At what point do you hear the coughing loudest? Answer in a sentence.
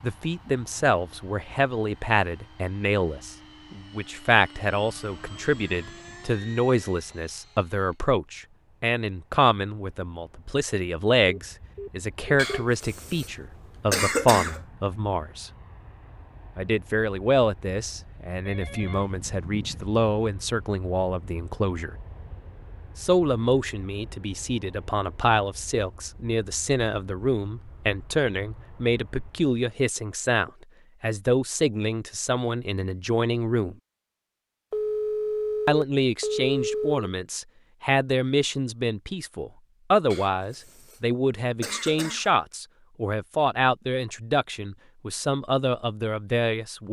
The loudest moment of the coughing is at 14 seconds.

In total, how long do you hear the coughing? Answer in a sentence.
The coughing can be heard for 3 seconds in total.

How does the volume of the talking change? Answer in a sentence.
The loudness of the talking stays about the same.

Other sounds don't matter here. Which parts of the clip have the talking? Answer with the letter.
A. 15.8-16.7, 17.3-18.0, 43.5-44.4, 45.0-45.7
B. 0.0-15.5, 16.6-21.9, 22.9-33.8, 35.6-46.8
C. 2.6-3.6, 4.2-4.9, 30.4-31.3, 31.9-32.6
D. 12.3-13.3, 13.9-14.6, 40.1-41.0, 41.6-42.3
B.